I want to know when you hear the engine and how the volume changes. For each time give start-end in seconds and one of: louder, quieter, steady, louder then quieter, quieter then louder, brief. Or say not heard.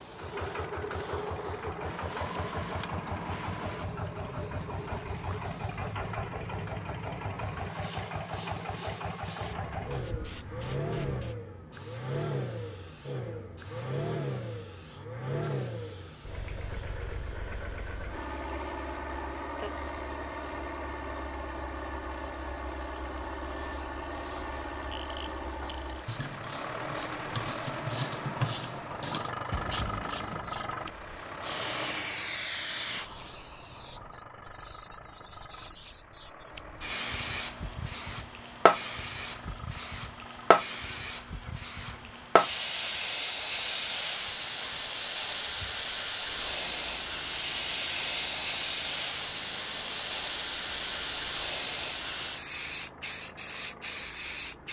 0.0-54.6 quieter.